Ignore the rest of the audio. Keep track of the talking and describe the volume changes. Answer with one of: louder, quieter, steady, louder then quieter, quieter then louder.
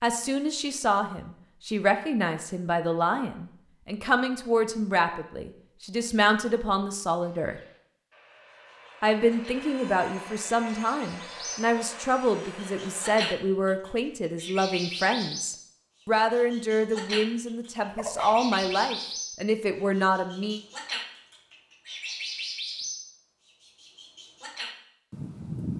steady.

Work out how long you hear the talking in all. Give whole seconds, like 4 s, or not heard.
19 s.